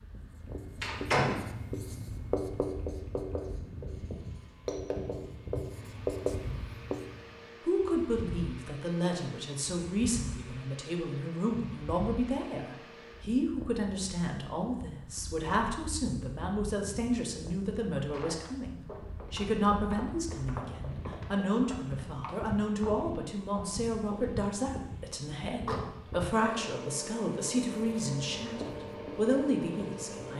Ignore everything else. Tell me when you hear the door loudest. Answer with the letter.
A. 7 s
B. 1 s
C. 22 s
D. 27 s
B.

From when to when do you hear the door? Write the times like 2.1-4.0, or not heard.
0.8-1.5, 25.6-26.5.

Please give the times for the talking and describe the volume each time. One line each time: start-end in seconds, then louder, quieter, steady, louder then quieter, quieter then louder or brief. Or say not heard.
7.7-30.3 steady.